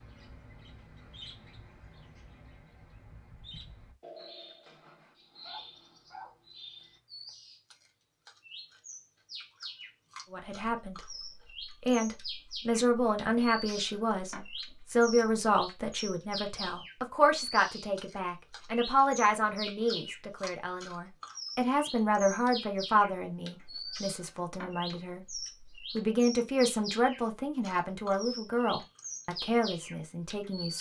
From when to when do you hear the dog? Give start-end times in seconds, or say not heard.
5.4-7.3.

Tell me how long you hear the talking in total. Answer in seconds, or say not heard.
20 s.